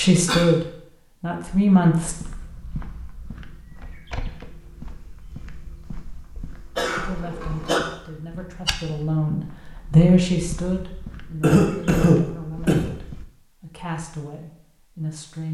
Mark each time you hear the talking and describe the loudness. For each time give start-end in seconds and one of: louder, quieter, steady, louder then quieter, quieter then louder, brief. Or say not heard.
0.0-2.1 brief
7.0-15.4 louder then quieter.